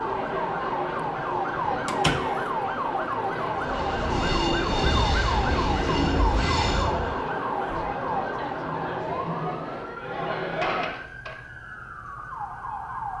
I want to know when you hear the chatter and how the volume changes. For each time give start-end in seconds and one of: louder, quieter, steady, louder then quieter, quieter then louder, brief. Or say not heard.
0.0-10.9 steady.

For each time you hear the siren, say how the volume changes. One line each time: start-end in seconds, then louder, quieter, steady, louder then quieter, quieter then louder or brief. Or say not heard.
0.0-13.1 quieter.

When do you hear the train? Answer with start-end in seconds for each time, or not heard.
3.5-7.2.